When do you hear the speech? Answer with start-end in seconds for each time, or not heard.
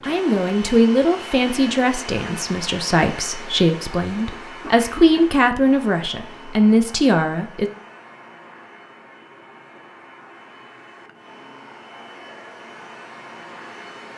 0.0-7.7.